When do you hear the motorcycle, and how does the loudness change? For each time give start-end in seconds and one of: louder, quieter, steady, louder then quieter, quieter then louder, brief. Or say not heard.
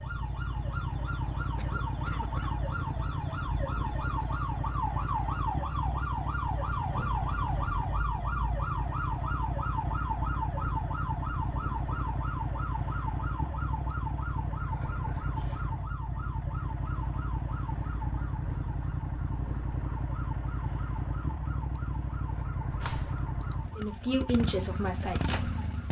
0.0-25.8 steady.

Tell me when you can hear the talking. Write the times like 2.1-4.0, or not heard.
23.8-25.8.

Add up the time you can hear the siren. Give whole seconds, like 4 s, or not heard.
26 s.